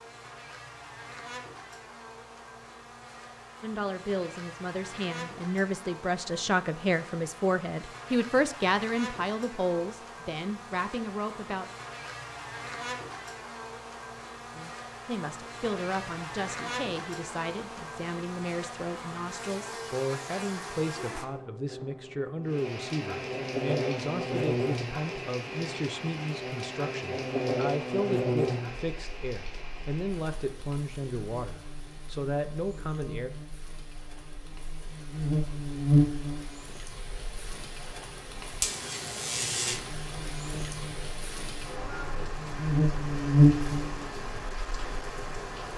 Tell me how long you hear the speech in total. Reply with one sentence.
The speech can be heard for 27 seconds in total.